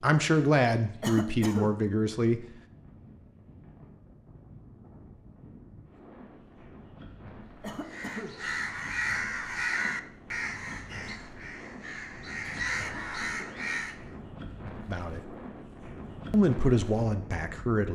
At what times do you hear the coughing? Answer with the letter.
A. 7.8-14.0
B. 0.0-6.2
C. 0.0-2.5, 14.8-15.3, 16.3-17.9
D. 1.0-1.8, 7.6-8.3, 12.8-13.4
D.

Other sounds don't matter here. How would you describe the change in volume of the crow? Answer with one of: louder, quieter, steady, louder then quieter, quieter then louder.
quieter then louder.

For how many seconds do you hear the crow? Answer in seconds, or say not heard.
6 s.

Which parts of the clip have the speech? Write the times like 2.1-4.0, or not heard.
0.0-2.5, 14.8-15.3, 16.3-17.9.